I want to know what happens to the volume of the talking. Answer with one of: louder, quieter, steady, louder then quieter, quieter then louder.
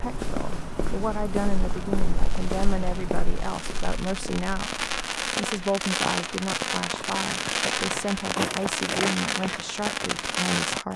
steady.